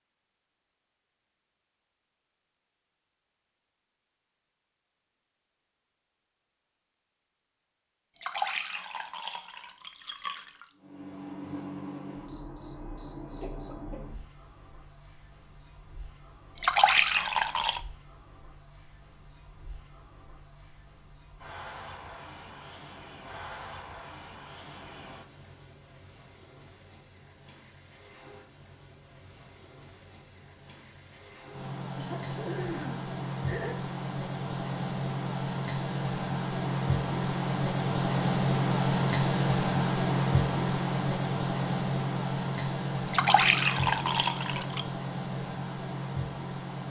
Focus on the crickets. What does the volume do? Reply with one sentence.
The volume of the crickets goes up.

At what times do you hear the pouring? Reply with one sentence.
You can hear the pouring from 8.2 to 10.7 s, from 16.6 to 17.8 s and from 43.0 to 44.9 s.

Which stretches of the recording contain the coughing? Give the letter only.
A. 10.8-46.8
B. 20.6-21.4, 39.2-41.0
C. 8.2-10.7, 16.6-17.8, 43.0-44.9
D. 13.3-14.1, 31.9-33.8
D.